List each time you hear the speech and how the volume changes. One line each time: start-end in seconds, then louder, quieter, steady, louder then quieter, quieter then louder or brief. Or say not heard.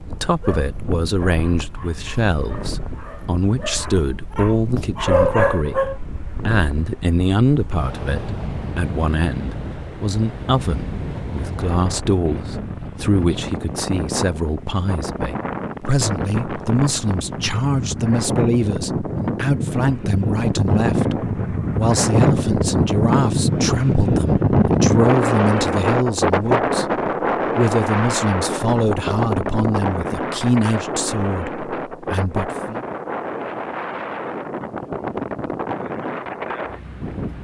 0.2-32.9 steady.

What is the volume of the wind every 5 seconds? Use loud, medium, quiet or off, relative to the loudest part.
quiet, quiet, medium, medium, loud, loud, medium, medium.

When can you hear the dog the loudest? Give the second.
5 s.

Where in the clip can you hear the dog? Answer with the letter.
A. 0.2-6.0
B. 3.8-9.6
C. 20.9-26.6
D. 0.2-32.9
A.